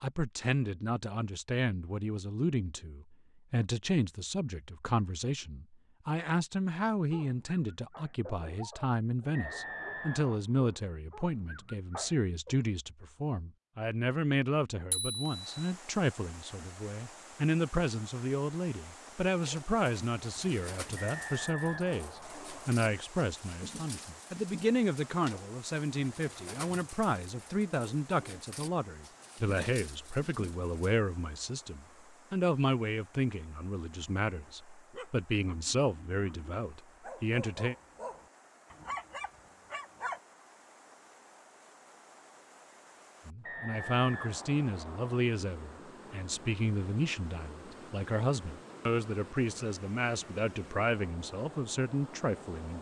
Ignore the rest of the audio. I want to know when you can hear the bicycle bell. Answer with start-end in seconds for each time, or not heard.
14.9-15.7.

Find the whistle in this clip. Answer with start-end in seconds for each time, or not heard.
9.3-10.4, 20.9-22.7, 43.4-45.2.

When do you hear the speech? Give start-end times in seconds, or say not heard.
0.0-37.8, 43.2-52.7.